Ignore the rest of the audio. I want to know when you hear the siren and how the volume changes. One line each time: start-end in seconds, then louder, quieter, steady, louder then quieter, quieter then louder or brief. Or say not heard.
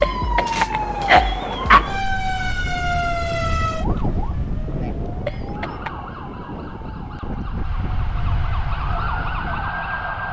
0.0-10.2 quieter then louder.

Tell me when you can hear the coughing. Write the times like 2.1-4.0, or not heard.
0.0-1.9, 5.2-5.9.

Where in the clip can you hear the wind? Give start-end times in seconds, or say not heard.
0.0-10.2.